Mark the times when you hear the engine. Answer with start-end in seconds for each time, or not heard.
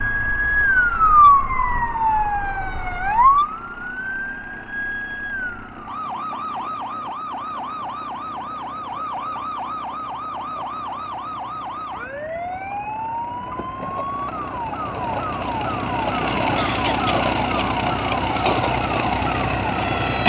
0.0-20.2.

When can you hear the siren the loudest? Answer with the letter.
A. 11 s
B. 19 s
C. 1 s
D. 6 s
C.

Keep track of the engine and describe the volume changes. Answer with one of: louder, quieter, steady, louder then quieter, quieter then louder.
louder.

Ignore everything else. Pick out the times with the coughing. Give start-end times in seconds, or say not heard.
16.6-17.2.